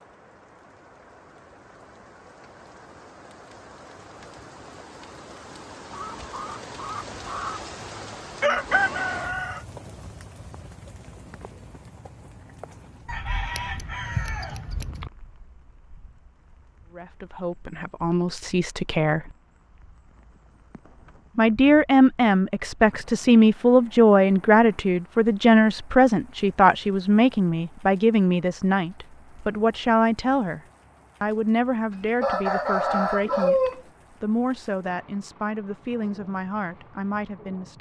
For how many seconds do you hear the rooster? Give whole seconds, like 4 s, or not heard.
8 s.